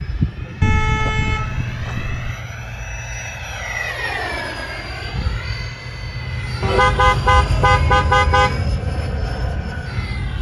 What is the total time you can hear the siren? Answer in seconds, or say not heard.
not heard.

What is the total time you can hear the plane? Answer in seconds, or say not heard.
10 s.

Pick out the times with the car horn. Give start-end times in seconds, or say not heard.
0.6-2.4, 6.6-8.6.